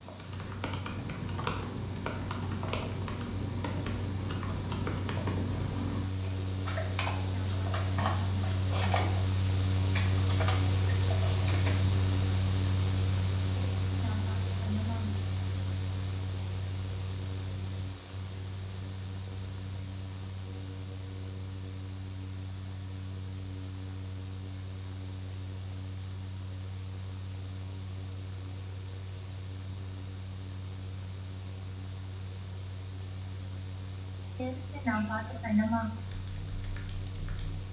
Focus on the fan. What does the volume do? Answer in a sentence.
The volume of the fan goes up, then down.